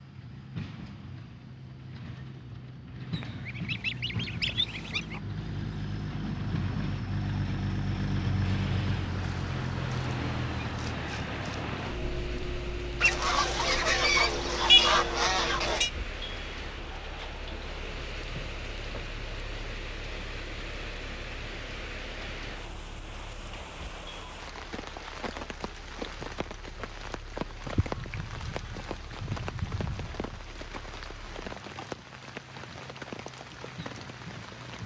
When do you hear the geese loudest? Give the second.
15 s.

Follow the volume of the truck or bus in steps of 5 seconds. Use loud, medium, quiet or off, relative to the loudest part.
medium, loud, loud, medium, quiet, quiet, quiet.